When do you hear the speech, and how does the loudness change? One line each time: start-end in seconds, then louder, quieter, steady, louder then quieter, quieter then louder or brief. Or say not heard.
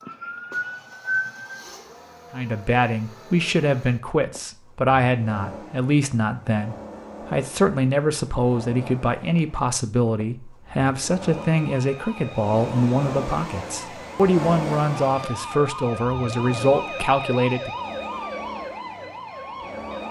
2.3-17.7 steady.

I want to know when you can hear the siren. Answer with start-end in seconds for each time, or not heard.
0.0-1.8, 11.2-20.0.